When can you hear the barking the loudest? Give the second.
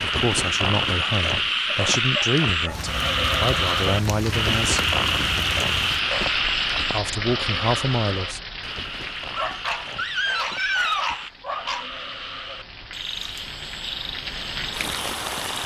11 s.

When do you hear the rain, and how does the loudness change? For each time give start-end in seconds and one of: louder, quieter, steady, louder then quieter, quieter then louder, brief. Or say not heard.
2.6-15.6 quieter then louder.